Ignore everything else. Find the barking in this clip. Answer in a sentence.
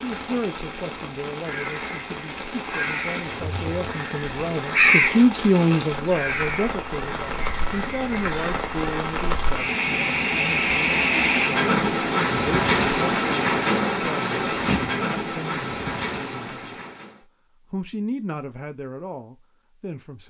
The barking can't be heard in this clip.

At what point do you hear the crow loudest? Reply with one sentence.
The loudest moment of the crow is at 5 seconds.